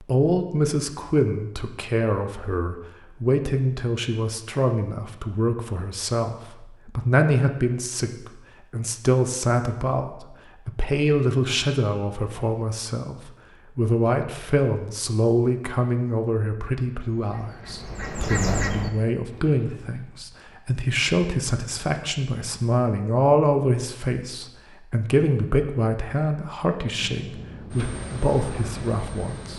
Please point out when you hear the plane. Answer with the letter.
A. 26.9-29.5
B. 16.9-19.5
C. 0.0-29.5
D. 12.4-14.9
A.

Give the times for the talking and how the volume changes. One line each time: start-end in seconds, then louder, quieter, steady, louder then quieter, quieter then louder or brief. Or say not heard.
0.0-29.5 steady.